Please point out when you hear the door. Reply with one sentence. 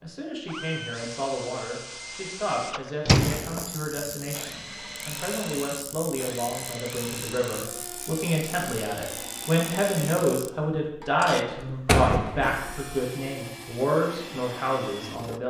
You can hear the door from 3.0 to 3.6 s and from 11.8 to 12.8 s.